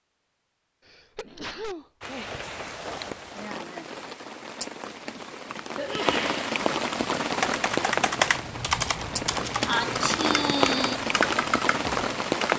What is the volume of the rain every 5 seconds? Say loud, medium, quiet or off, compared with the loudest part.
medium, loud, loud.